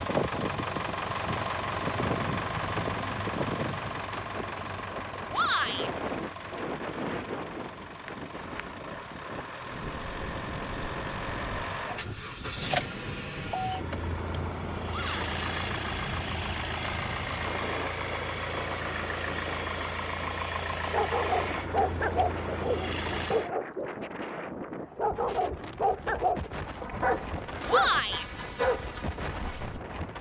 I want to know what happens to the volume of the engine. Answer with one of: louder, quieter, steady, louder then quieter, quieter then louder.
quieter then louder.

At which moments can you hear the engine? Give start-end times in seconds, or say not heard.
0.0-23.5.